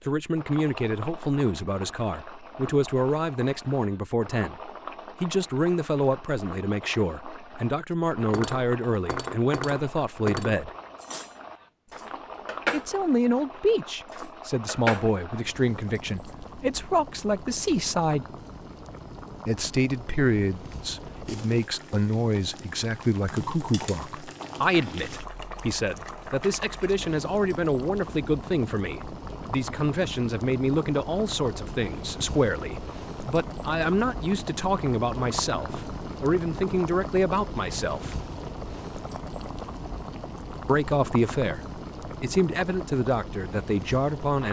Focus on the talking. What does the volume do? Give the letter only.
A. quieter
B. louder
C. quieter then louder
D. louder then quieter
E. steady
E.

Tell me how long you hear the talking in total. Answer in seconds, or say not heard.
39 s.